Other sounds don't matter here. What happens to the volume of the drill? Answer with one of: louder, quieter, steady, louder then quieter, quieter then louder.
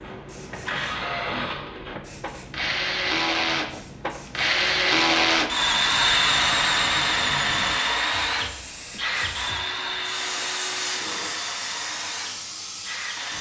louder then quieter.